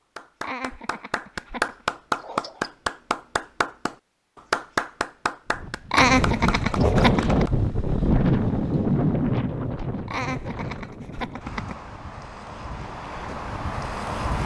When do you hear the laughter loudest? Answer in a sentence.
The volume of the laughter peaks at 6 seconds.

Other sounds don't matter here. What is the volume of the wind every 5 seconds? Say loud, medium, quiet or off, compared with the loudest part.
off, loud, medium.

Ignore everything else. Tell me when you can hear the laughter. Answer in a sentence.
You can hear the laughter from 0.4 to 1.8 s, from 5.9 to 7.5 s and from 10.1 to 11.8 s.